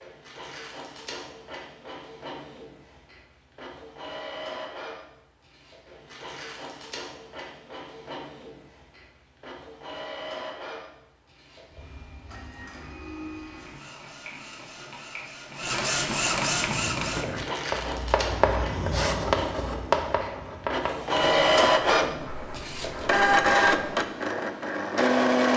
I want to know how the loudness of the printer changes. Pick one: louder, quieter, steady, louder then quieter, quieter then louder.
louder.